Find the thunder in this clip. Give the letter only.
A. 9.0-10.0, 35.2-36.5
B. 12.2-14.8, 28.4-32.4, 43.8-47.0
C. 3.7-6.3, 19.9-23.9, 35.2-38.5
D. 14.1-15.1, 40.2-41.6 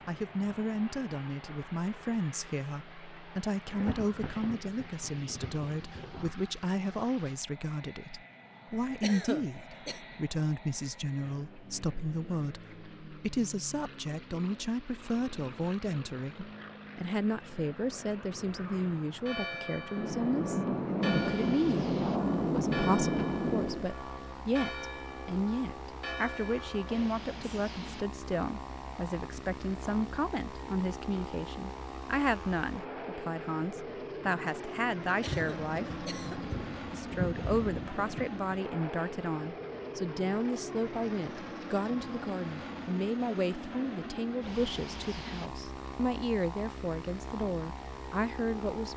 C.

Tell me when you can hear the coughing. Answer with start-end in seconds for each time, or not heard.
9.0-10.0, 35.2-36.5.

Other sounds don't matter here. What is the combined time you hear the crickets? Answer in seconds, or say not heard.
not heard.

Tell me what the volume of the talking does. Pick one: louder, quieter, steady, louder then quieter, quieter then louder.
steady.